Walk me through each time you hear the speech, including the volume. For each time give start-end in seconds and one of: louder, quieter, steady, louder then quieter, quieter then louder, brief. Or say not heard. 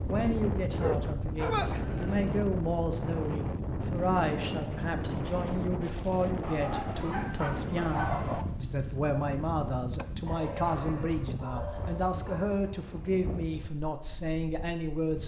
0.1-15.2 steady.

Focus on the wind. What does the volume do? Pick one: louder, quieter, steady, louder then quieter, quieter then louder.
quieter.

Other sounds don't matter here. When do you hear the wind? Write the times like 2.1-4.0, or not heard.
0.0-15.2.